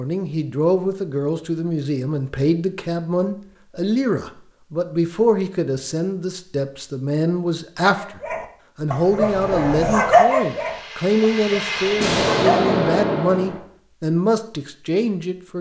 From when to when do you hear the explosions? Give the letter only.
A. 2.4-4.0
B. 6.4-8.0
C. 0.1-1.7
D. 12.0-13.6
D.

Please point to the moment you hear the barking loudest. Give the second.
10 s.